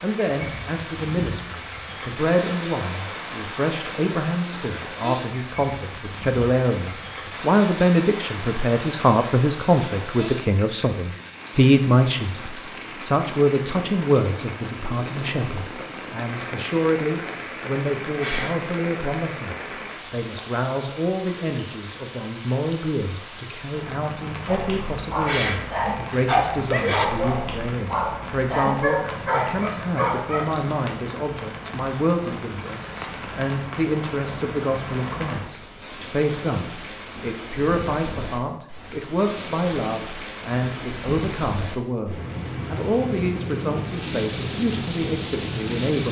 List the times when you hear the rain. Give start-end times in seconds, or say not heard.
0.0-46.0.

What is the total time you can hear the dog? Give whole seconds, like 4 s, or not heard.
6 s.